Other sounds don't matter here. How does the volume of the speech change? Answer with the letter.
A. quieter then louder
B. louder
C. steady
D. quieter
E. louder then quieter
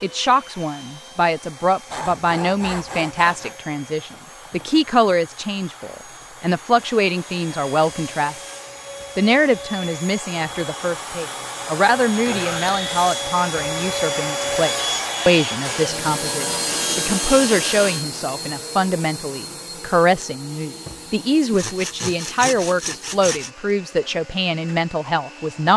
C.